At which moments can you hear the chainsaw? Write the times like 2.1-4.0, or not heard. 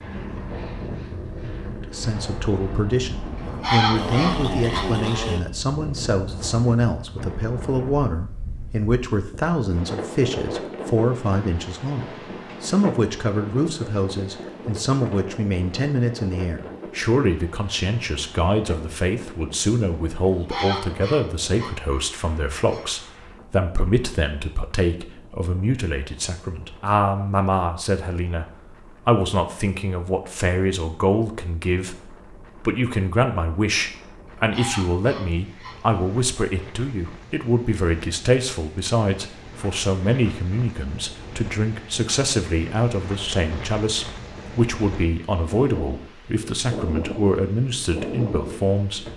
0.0-5.4.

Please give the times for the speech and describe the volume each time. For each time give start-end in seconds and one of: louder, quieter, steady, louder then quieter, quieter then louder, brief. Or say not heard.
1.7-49.0 steady.